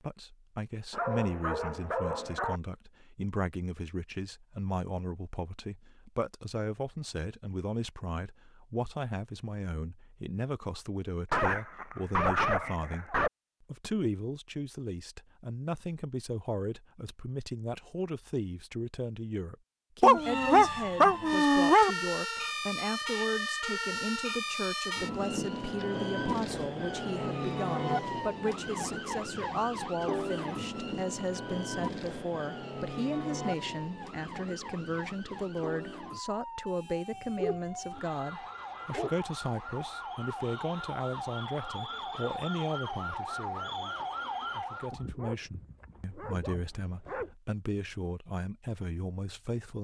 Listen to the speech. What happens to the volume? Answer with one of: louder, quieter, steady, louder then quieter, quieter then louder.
steady.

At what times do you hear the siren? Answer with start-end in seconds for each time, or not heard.
20.1-45.0.